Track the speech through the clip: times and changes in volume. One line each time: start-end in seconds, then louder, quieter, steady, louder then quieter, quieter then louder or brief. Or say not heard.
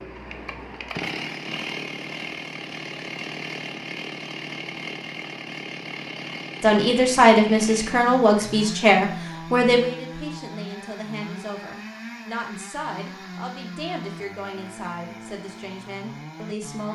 6.6-16.9 quieter.